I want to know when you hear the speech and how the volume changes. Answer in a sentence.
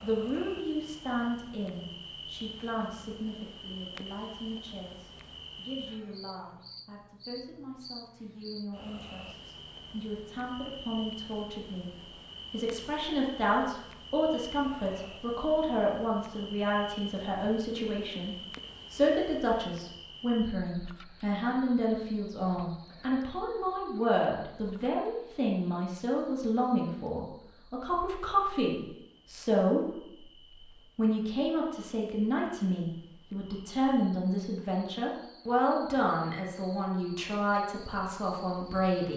The speech can be heard from 0.0 to 39.1 s, getting louder.